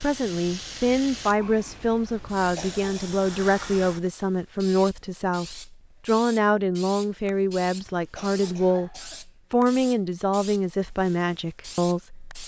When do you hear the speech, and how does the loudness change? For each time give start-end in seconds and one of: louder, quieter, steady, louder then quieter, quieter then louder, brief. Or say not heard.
0.0-12.3 steady.